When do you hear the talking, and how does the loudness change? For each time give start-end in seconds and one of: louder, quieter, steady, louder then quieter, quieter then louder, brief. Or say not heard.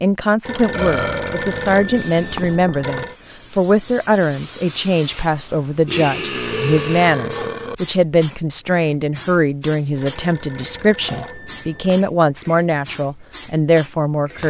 0.0-14.4 steady.